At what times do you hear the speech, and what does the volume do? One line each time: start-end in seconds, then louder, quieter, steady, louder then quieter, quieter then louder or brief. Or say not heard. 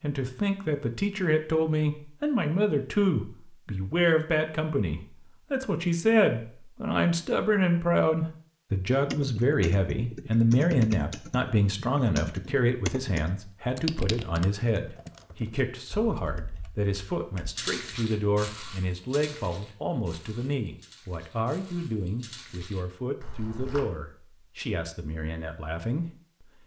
0.0-26.5 quieter.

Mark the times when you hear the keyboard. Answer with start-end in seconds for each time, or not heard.
9.1-17.5.